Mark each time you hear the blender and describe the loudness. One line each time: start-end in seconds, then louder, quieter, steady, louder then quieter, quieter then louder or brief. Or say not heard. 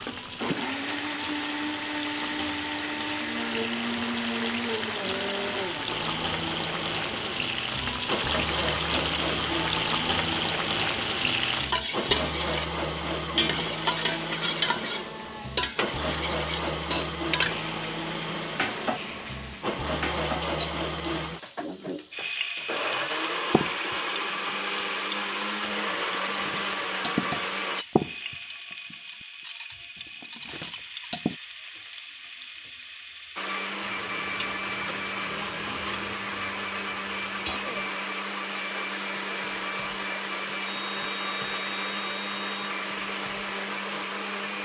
0.0-27.9 steady
33.4-44.6 steady.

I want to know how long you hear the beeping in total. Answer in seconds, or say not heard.
2 s.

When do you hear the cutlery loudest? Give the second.
27 s.